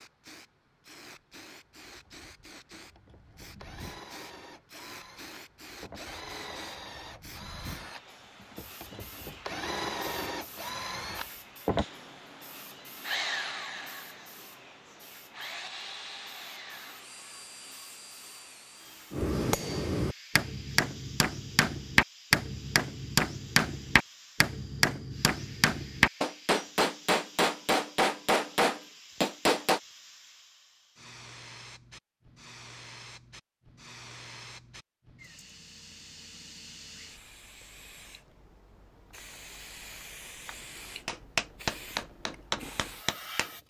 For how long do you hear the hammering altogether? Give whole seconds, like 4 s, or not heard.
13 s.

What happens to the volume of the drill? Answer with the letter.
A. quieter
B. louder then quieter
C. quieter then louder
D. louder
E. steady
B.